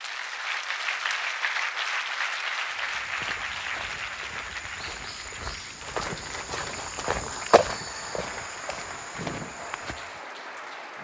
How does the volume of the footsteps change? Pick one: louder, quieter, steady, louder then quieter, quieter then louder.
louder then quieter.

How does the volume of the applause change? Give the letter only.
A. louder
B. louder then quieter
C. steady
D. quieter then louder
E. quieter
E.